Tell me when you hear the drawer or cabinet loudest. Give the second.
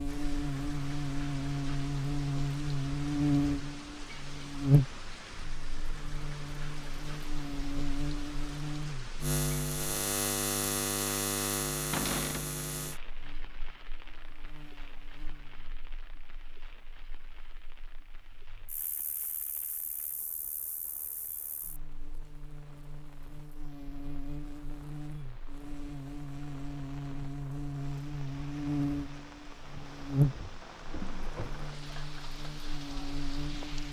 12 s.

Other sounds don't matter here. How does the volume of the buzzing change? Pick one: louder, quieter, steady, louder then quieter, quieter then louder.
quieter then louder.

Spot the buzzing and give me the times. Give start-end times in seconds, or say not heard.
0.0-33.8.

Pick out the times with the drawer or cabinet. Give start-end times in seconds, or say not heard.
11.9-12.5, 30.3-31.6.